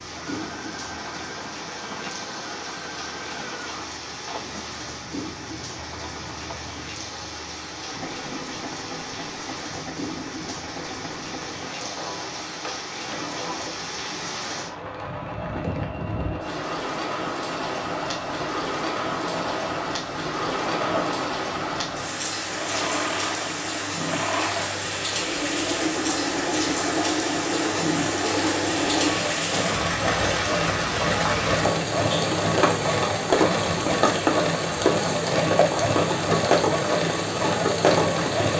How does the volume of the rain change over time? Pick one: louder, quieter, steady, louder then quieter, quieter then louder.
louder.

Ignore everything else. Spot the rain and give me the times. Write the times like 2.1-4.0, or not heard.
0.0-38.5.